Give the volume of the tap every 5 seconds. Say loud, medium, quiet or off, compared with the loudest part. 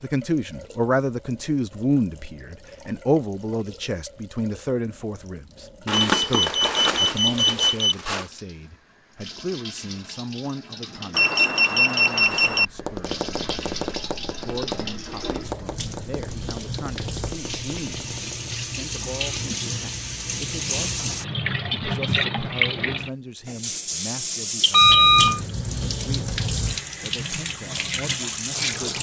quiet, quiet, medium, medium, loud, loud.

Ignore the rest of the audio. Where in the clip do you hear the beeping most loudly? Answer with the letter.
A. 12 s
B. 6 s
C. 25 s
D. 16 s
C.